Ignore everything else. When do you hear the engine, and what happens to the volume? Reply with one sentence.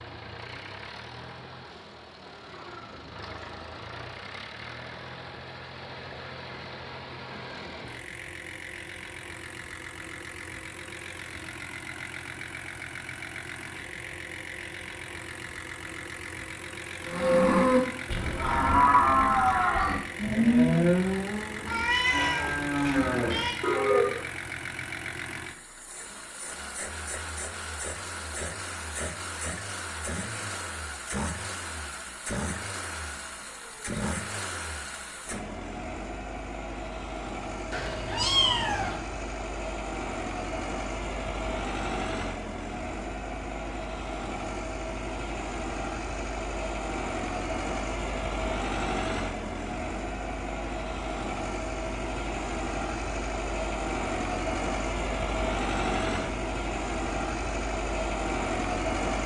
You can hear the engine from 0.0 to 59.2 s, getting louder.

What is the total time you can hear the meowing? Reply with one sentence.
The meowing can be heard for 3 seconds in total.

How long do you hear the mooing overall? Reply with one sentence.
The mooing can be heard for 7 seconds in total.